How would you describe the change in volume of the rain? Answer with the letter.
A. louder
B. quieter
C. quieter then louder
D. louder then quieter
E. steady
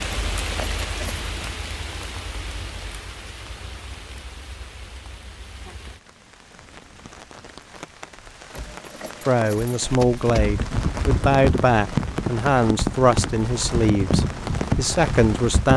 C.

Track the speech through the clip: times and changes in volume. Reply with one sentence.
You can hear the speech from 9.2 to 15.7 s, at a steady volume.